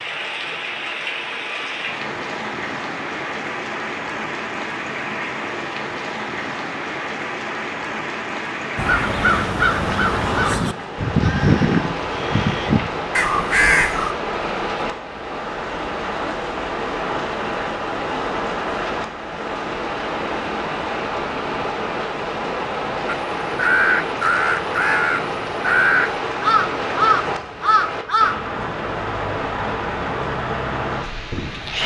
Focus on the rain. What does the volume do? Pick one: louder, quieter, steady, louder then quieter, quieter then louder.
steady.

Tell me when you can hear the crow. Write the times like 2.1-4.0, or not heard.
8.8-14.2, 23.1-28.4.